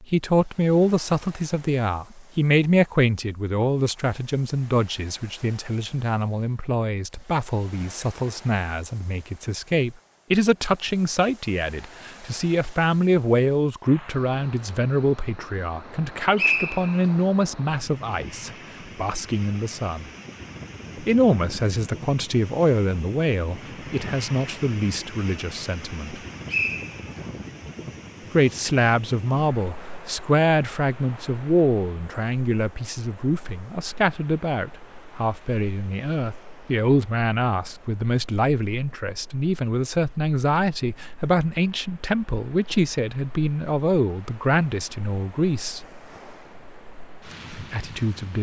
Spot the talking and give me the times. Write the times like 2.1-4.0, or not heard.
0.0-20.1, 20.9-26.2, 28.3-45.9, 47.5-48.3.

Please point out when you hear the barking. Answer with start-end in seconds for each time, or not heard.
not heard.